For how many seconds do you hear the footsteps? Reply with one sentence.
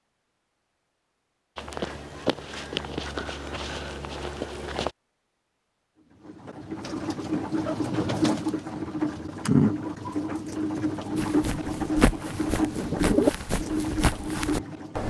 The footsteps can be heard for 7 seconds in total.